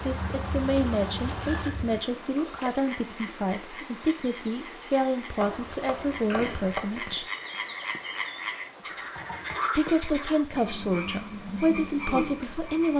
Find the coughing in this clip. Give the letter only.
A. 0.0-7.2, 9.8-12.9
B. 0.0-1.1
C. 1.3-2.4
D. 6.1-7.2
D.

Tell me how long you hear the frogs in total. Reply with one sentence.
You can hear the frogs for 13 seconds altogether.